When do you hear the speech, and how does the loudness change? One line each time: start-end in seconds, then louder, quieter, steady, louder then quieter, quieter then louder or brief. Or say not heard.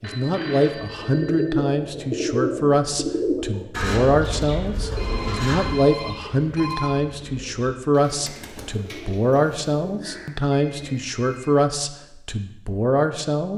0.0-13.5 steady.